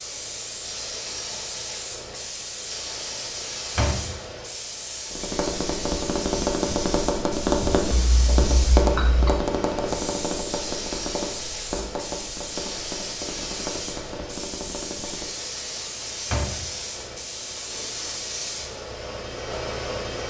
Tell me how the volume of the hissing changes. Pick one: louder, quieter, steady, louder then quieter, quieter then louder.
steady.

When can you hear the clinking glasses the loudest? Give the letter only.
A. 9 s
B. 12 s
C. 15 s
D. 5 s
A.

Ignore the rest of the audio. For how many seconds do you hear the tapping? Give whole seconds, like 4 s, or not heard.
10 s.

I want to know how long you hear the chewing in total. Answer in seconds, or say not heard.
not heard.